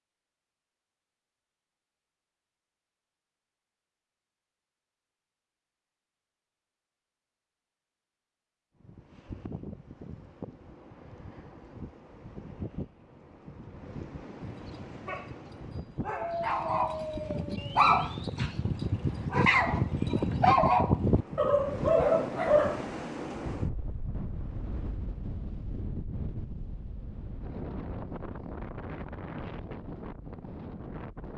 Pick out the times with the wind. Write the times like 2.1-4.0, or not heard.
8.8-31.3.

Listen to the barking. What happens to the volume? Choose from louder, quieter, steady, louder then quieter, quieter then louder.
louder.